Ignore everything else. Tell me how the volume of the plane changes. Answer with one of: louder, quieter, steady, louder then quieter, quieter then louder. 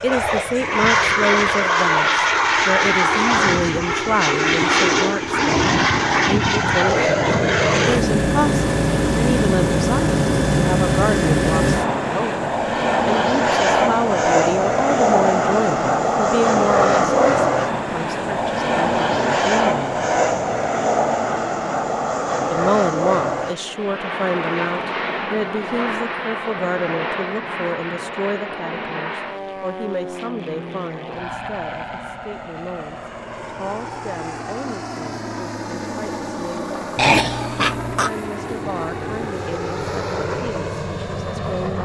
quieter.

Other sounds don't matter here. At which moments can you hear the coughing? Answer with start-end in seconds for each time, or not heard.
37.0-38.1.